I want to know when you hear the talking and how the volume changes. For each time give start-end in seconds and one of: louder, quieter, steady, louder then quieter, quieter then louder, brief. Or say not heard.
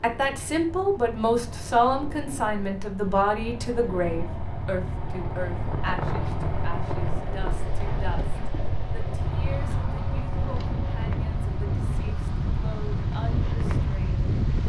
0.0-14.2 quieter.